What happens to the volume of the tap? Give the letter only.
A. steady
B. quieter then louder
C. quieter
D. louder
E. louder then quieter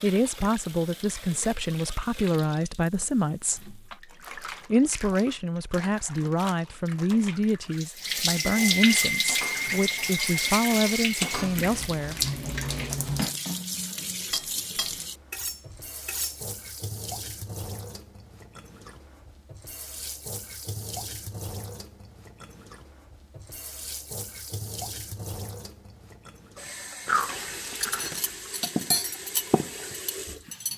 E.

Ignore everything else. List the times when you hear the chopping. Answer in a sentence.
The chopping can't be heard in this clip.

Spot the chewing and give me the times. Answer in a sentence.
The chewing can be heard from 27.1 to 28.1 s.